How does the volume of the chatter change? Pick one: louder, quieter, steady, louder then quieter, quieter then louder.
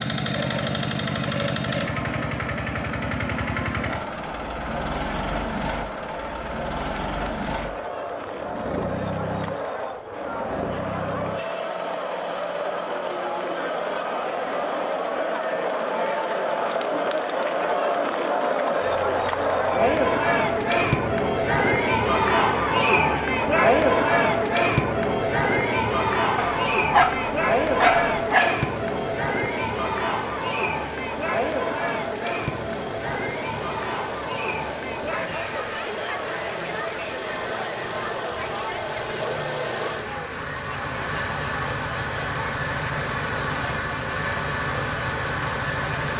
louder then quieter.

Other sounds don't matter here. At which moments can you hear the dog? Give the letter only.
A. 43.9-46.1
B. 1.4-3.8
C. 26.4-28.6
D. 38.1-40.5
C.